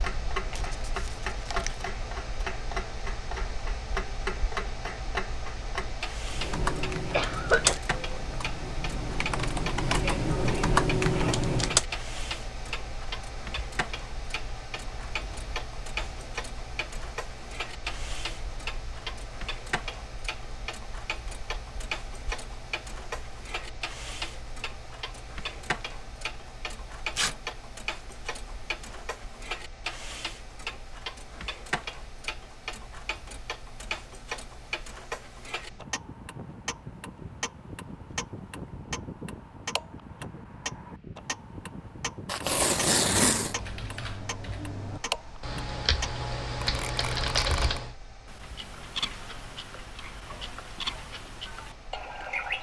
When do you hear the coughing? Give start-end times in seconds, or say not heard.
7.1-7.8.